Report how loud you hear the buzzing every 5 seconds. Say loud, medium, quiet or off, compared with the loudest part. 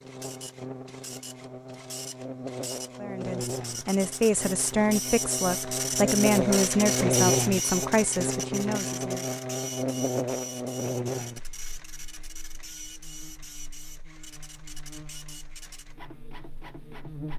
medium, loud, medium, quiet.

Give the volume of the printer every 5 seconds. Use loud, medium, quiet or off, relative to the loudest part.
medium, loud, quiet, quiet.